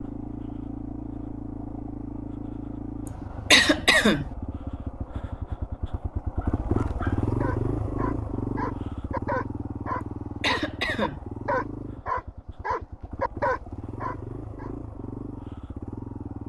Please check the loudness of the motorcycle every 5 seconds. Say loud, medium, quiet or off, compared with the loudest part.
medium, loud, medium, medium.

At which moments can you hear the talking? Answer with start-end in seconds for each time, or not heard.
not heard.